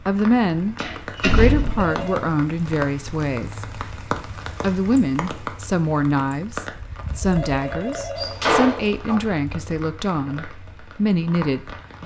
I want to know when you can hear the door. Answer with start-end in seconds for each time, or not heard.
0.8-2.0, 8.2-9.2.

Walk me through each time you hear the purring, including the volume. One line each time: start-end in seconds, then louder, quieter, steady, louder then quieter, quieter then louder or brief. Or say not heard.
not heard.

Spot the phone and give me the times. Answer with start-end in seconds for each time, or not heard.
1.7-2.2, 7.0-8.4.